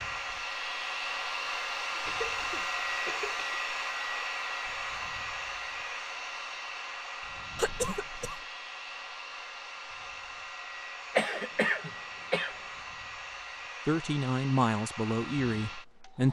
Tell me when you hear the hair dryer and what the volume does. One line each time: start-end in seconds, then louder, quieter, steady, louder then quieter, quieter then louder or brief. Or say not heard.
0.0-16.2 quieter.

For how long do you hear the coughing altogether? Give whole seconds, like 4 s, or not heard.
4 s.